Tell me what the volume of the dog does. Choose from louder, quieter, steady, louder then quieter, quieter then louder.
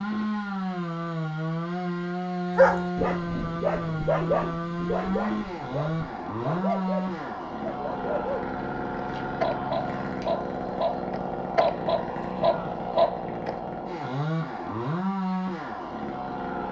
quieter then louder.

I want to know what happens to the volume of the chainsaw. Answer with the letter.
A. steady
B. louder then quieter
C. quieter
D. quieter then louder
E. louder
A.